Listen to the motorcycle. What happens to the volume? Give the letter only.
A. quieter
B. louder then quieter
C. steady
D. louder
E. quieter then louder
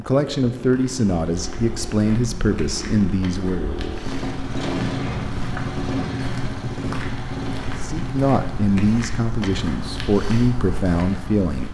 B.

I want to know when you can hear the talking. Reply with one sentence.
The talking can be heard from 0.0 to 3.7 s and from 7.8 to 11.6 s.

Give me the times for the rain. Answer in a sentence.
You can't hear the rain here.